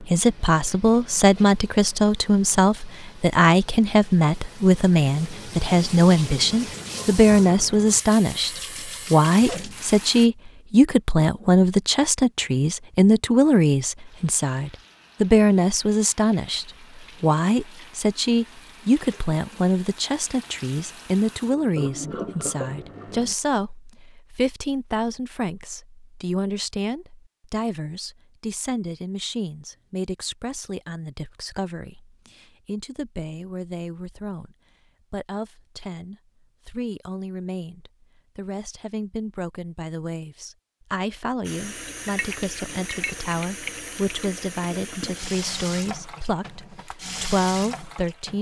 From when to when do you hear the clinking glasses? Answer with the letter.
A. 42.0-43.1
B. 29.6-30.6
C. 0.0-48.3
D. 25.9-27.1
A.